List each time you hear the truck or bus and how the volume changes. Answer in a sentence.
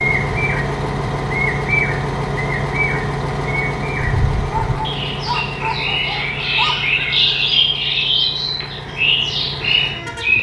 The truck or bus can be heard from 0.0 to 10.3 s, getting quieter.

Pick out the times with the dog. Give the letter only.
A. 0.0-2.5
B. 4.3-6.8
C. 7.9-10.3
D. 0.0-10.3
B.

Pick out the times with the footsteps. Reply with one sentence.
You can't hear the footsteps here.